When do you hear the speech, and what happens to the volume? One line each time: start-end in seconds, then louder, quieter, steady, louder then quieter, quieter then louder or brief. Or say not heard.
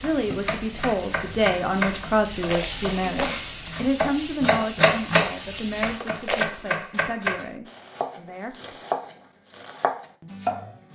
0.0-8.8 quieter.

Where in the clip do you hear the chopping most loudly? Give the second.
5 s.